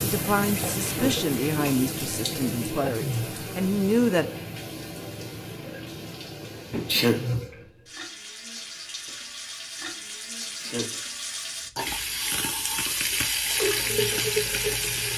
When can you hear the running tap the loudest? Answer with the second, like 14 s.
14 s.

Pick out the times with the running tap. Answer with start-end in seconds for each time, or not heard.
0.0-15.1.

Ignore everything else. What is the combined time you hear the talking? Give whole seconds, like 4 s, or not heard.
4 s.